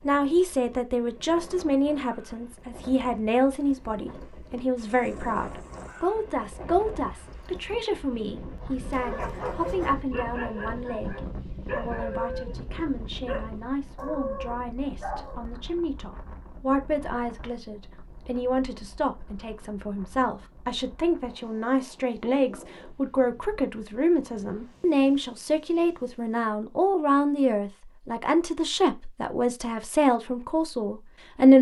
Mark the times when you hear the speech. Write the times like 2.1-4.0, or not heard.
0.0-31.5.